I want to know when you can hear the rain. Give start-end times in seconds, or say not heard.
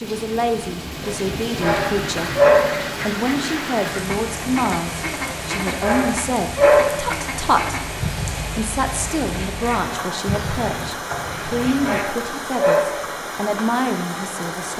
0.0-14.7.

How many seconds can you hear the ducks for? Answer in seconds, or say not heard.
10 s.